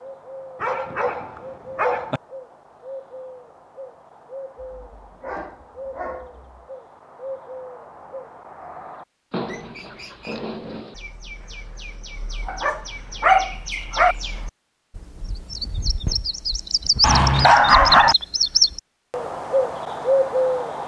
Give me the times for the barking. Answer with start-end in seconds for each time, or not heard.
0.6-2.2, 4.6-6.7, 9.3-10.9, 12.4-14.2, 17.0-18.1.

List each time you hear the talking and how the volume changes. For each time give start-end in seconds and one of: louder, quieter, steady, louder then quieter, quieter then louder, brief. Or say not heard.
not heard.